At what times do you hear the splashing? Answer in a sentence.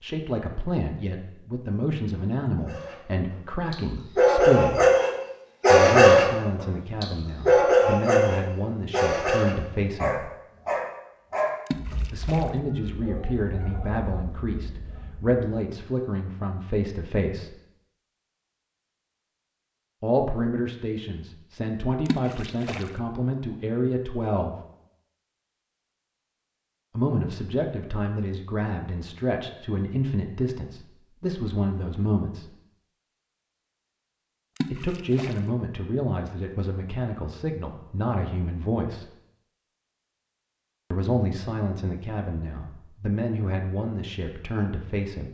You can hear the splashing from 11.7 to 12.5 s, from 22.1 to 22.9 s and from 34.5 to 35.4 s.